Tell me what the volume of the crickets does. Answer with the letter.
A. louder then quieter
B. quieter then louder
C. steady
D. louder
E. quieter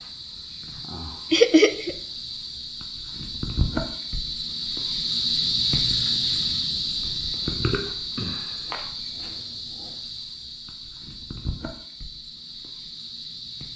A.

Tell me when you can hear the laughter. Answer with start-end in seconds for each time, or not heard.
1.3-1.9.